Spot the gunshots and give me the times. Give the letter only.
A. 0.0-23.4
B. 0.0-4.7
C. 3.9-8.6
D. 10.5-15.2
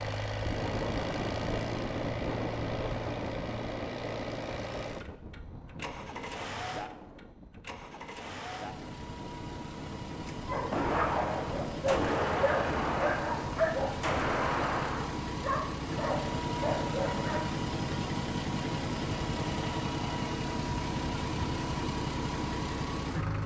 D.